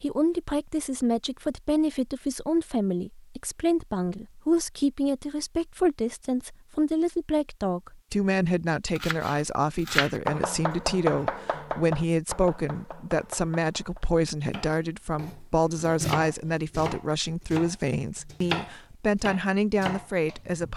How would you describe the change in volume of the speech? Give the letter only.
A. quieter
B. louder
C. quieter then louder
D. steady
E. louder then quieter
D.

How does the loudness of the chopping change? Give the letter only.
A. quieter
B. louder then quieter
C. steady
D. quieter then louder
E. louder
D.